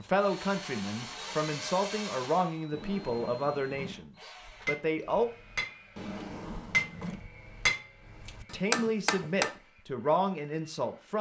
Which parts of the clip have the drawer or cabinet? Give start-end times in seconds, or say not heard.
2.7-4.0, 6.0-7.2.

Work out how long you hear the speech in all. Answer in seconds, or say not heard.
8 s.